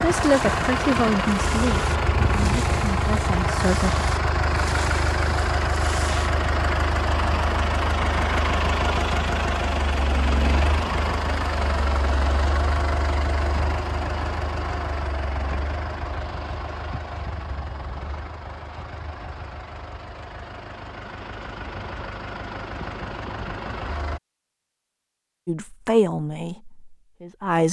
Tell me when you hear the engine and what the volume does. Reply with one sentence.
You can hear the engine from 0.0 to 24.2 s, getting quieter.